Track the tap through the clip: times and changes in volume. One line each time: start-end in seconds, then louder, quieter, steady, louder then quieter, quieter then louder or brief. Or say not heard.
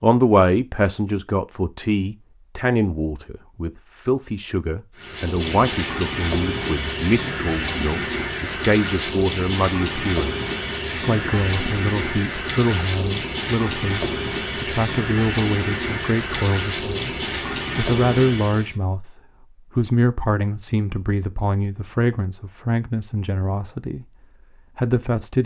5.0-18.8 steady.